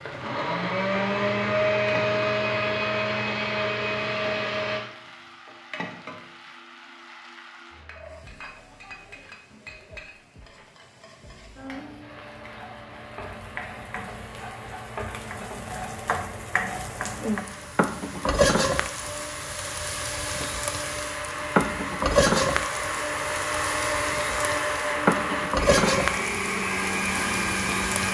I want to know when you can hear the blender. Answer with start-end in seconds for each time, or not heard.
0.1-4.8, 12.0-28.0.